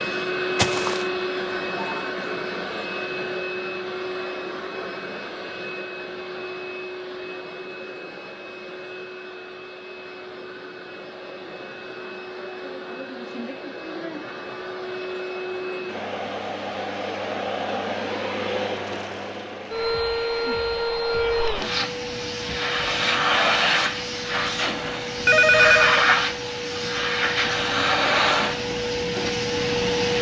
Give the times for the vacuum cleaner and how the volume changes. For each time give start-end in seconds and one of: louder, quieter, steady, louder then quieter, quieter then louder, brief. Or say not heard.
0.0-30.1 quieter then louder.